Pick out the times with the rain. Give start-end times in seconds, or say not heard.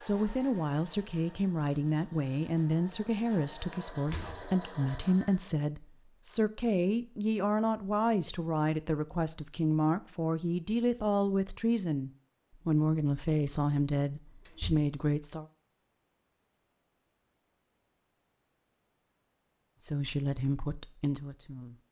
not heard.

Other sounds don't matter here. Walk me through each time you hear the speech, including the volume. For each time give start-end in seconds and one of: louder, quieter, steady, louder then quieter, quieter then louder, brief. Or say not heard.
0.0-15.4 steady
19.8-21.8 brief.